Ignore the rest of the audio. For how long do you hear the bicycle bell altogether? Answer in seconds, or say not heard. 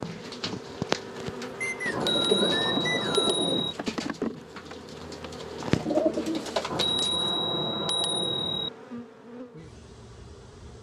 4 s.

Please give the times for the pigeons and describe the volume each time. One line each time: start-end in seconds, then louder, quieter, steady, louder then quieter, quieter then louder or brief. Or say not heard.
0.0-7.3 quieter then louder.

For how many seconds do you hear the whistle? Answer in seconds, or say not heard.
2 s.